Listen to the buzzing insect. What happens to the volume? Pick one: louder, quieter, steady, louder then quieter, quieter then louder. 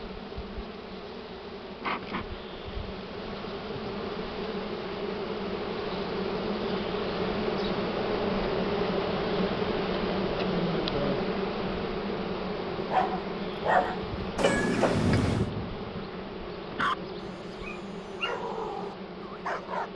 louder then quieter.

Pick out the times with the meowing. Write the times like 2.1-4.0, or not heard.
14.3-15.5.